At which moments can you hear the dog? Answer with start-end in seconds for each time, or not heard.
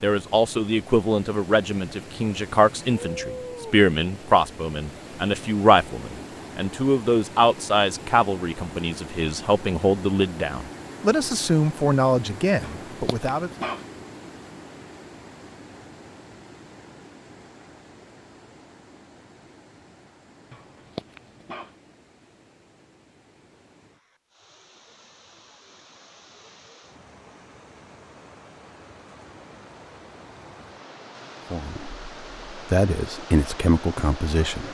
12.6-13.8, 20.5-21.8.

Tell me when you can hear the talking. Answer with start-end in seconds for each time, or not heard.
0.0-13.5, 31.5-34.6.